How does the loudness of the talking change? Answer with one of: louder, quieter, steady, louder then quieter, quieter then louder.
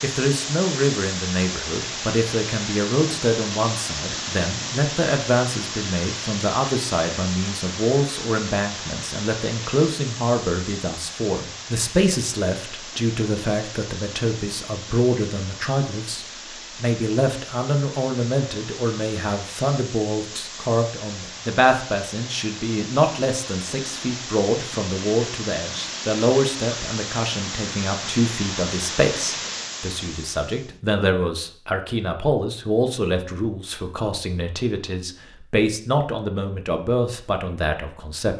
steady.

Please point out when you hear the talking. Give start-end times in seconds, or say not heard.
0.0-38.3.